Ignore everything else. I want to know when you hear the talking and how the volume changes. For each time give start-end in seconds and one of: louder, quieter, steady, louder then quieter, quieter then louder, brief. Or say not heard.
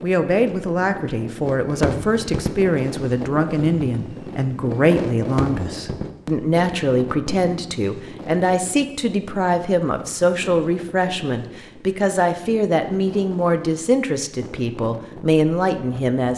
0.0-16.3 steady.